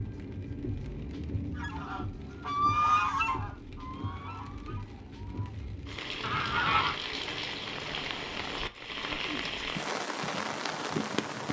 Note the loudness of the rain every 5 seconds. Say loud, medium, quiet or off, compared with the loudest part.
medium, loud, loud.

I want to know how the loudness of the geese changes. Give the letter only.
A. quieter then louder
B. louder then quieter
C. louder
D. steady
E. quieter
A.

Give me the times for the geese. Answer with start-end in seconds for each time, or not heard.
1.6-7.0.